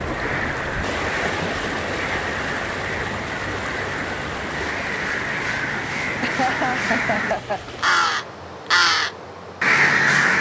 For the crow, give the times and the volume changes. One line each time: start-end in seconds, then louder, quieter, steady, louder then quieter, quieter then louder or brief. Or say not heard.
0.0-10.3 louder.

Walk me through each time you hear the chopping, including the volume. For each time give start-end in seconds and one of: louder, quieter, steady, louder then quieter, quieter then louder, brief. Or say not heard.
not heard.